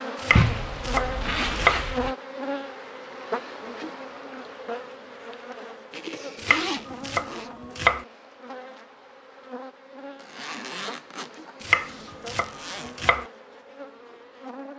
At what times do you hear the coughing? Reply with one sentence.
The coughing can't be heard in this clip.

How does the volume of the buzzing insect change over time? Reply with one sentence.
The volume of the buzzing insect goes down.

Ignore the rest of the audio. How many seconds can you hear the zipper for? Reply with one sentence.
The zipper can be heard for 6 seconds in total.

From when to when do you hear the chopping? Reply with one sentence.
You can hear the chopping from 0.1 to 1.9 s, from 6.3 to 8.1 s and from 11.6 to 13.2 s.